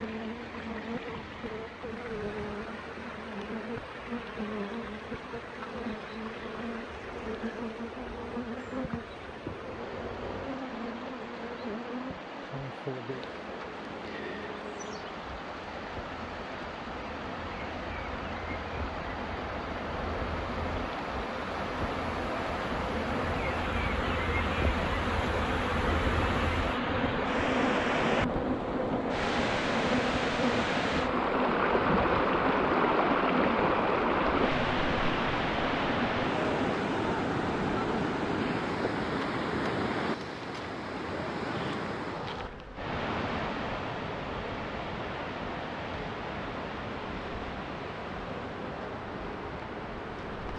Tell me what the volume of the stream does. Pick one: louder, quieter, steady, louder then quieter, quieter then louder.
louder then quieter.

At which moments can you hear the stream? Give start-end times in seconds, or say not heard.
0.0-50.5.